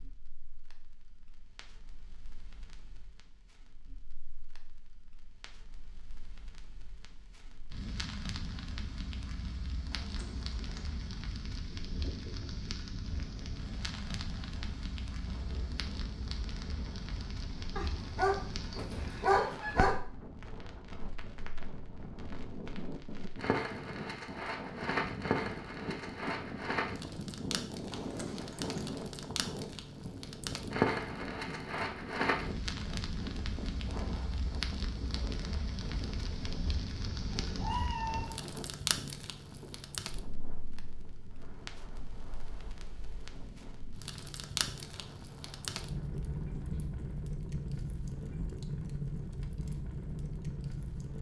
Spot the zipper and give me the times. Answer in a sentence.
You can hear the zipper from 9.9 to 11.2 s and from 27.9 to 28.9 s.